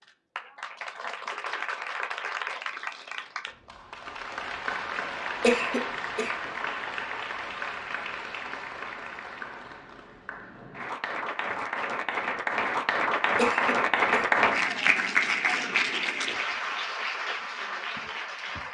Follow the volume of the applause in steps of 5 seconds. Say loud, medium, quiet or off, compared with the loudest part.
medium, medium, loud, loud.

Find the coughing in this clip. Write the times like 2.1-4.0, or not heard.
5.4-6.3, 13.3-14.3.